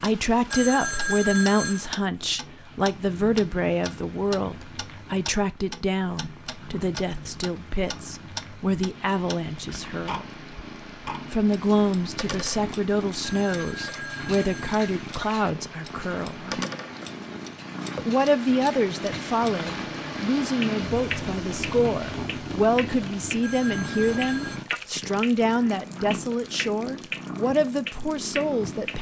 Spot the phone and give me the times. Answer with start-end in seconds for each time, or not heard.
0.5-1.9, 13.2-14.8, 23.4-24.6.